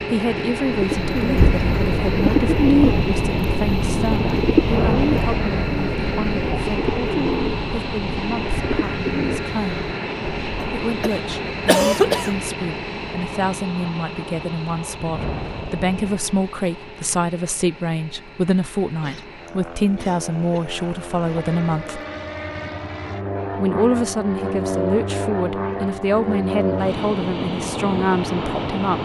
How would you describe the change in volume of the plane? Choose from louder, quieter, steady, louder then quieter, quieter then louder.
quieter then louder.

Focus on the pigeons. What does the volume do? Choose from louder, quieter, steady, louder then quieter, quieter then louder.
quieter.